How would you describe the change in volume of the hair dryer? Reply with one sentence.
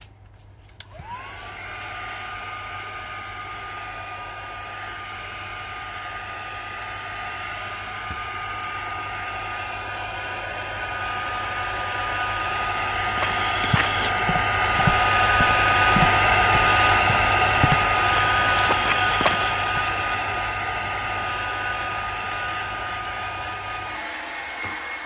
The loudness of the hair dryer goes up, then down.